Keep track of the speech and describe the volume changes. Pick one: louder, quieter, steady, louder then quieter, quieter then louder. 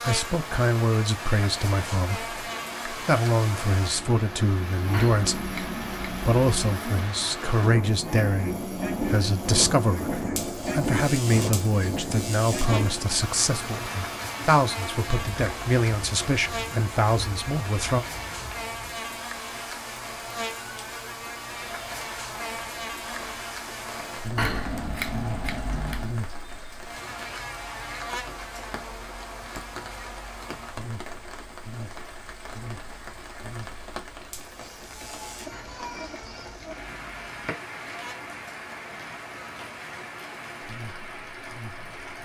steady.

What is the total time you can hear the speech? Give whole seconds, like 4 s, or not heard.
18 s.